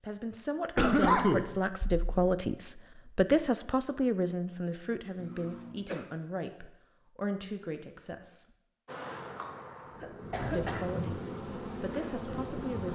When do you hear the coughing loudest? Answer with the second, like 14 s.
1 s.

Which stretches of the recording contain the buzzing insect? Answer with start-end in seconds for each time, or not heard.
8.8-12.9.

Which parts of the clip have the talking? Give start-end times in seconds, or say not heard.
0.0-8.4, 10.3-12.9.